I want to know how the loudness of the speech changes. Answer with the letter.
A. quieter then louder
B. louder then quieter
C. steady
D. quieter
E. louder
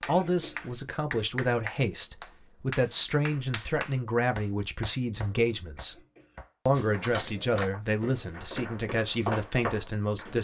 C.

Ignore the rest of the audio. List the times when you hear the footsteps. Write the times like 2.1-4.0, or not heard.
6.7-10.3.